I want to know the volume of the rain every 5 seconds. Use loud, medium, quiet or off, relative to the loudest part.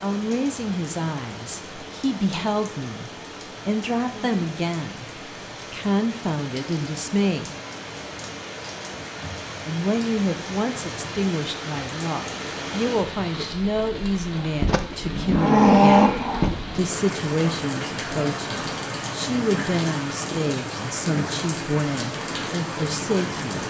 medium, medium, loud, loud, loud.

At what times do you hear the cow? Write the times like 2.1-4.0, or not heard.
14.7-16.8.